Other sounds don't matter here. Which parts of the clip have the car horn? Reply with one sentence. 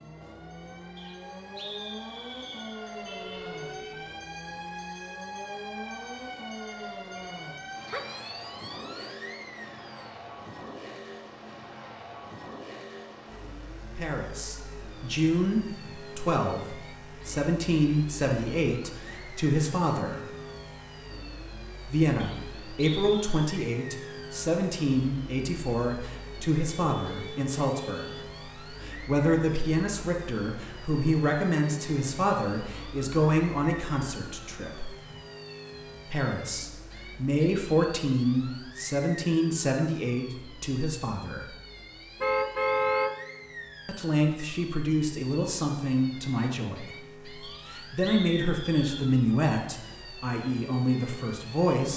The car horn can be heard from 3.0 to 4.2 s, from 26.6 to 28.3 s and from 42.2 to 43.1 s.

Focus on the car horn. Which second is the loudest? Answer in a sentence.
The loudest moment of the car horn is at 43 seconds.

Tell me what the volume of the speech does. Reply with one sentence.
The volume of the speech stays about the same.